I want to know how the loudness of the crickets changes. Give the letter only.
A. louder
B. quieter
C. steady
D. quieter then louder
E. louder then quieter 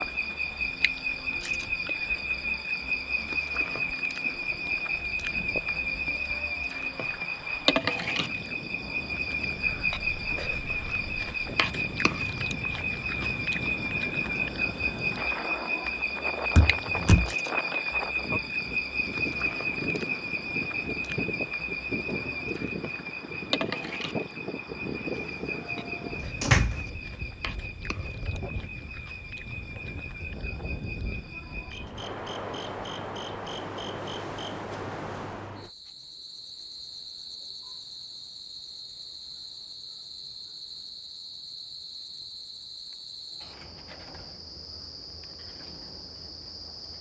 B.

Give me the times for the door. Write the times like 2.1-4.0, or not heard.
16.6-17.3, 26.4-26.9.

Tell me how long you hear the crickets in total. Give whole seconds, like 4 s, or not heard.
47 s.